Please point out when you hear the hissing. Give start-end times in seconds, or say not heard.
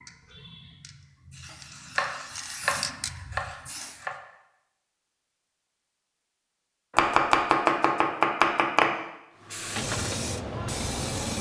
0.0-4.0, 9.4-11.3.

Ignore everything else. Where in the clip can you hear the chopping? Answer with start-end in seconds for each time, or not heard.
1.5-4.2, 7.0-8.9.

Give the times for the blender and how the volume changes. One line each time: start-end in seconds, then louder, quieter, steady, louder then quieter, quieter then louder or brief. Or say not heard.
not heard.